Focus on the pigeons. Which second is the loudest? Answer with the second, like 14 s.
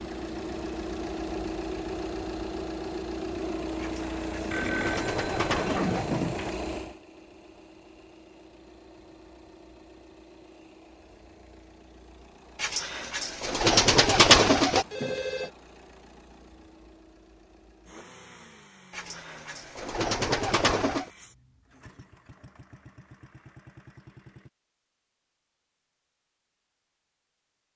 14 s.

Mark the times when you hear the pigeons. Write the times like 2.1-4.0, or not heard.
3.8-6.2, 12.6-14.8, 18.9-21.1.